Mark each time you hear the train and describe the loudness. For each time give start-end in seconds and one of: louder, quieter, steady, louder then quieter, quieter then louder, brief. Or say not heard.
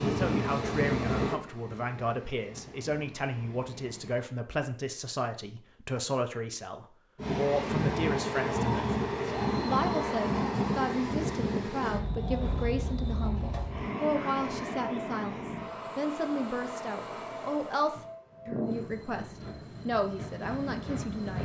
0.0-4.3 quieter
7.2-21.3 quieter.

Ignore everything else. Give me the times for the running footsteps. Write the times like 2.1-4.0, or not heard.
not heard.